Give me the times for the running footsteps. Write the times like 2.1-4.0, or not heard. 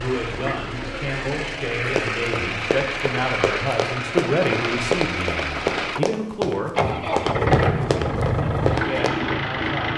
1.9-9.1.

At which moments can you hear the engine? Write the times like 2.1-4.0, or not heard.
0.0-9.9.